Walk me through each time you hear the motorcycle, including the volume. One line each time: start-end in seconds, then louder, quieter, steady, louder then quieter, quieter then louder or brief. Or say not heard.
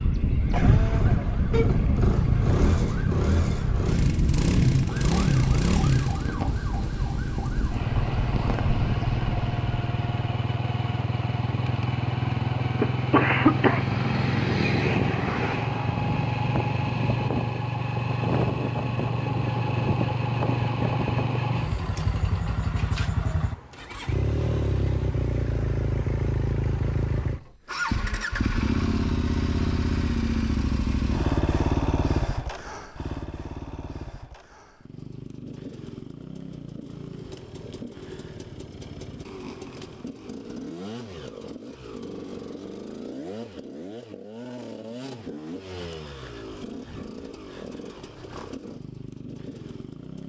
0.0-50.2 quieter.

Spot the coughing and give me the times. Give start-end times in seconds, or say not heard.
12.8-14.2.